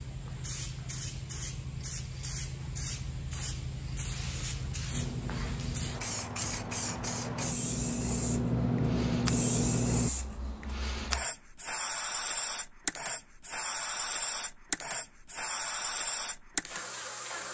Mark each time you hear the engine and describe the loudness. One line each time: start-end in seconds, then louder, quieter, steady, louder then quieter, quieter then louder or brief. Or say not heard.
4.9-10.1 louder.